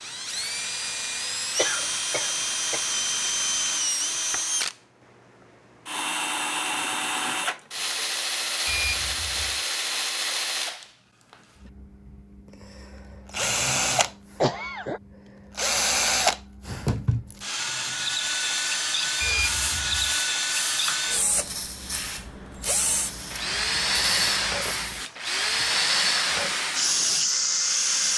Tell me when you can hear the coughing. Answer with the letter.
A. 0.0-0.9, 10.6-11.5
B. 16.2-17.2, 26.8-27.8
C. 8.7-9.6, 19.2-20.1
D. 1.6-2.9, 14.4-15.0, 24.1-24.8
D.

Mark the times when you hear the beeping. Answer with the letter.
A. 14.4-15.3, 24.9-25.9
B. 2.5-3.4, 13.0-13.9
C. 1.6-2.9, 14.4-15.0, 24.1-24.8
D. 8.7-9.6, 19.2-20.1
D.